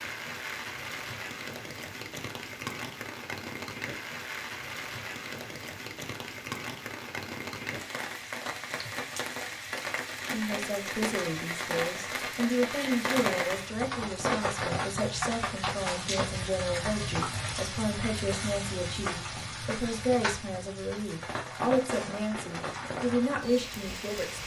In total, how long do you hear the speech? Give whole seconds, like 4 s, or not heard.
14 s.